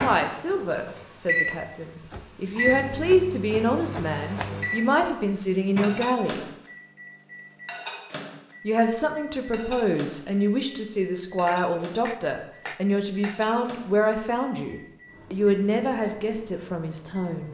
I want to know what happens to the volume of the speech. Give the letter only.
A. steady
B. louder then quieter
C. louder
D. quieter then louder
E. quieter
A.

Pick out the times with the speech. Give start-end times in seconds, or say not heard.
0.0-6.4, 8.6-17.4.